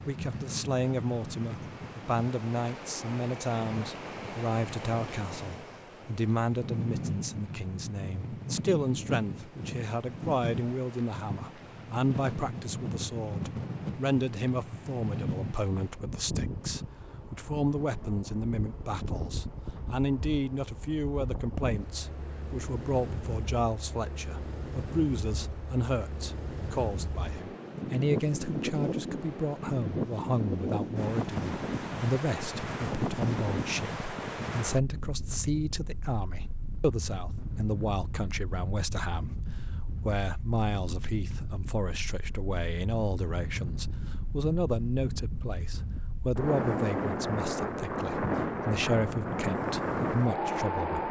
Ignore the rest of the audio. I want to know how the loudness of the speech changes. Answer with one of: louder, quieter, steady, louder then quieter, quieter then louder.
steady.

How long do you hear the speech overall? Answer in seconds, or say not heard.
51 s.